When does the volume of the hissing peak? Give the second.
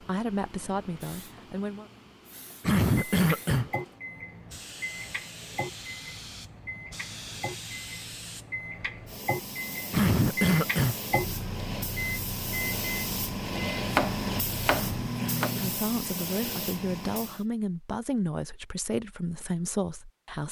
14 s.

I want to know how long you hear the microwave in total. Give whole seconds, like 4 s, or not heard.
13 s.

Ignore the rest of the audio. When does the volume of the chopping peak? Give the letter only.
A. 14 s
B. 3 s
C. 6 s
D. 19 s
A.